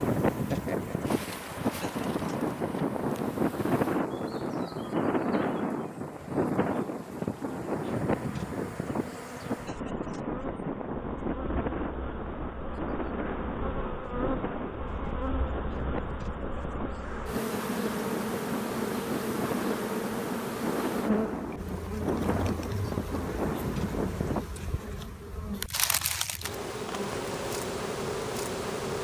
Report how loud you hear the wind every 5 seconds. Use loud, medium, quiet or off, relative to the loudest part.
loud, loud, medium, medium, loud, off.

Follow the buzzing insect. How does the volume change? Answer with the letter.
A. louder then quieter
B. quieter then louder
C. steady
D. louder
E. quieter
D.